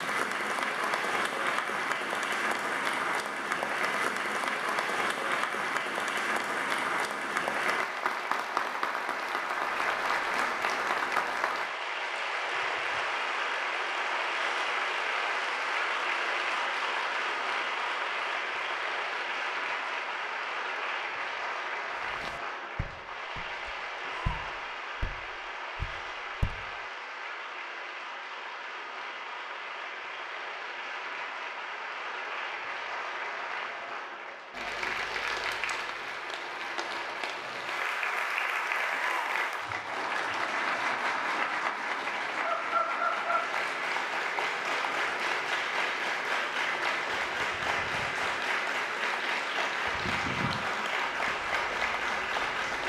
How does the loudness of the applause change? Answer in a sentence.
The loudness of the applause goes down, then up.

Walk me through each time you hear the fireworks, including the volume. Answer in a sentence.
The fireworks can't be heard in this clip.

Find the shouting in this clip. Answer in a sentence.
The shouting can be heard from 24.0 to 24.6 s and from 38.9 to 39.5 s.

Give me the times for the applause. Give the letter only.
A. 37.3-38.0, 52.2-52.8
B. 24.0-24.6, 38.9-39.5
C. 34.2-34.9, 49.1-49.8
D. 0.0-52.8
D.